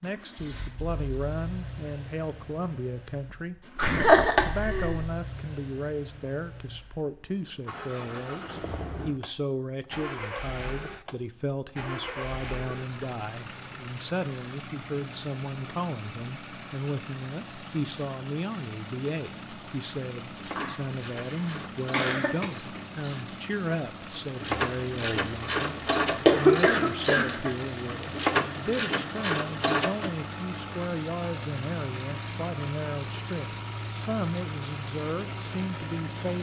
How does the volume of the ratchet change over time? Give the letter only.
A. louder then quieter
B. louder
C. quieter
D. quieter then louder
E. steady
B.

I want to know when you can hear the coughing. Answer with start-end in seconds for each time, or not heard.
3.8-5.0, 20.6-22.4, 26.2-27.4.